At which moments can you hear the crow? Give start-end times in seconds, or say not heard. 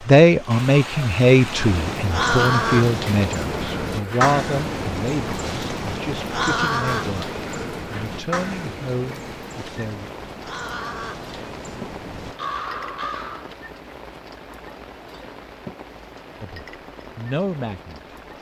1.2-13.5.